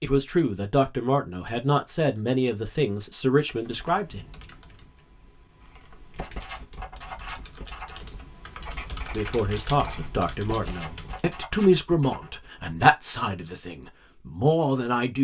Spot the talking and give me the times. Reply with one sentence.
You can hear the talking from 0.0 to 4.2 s and from 9.1 to 15.2 s.